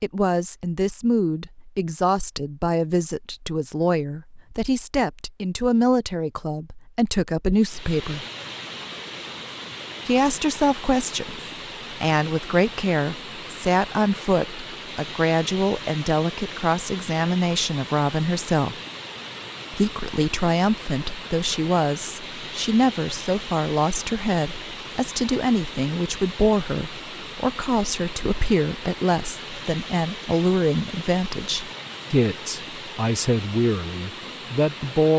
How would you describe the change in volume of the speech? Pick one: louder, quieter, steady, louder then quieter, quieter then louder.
steady.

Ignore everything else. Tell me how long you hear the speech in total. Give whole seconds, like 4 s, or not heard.
32 s.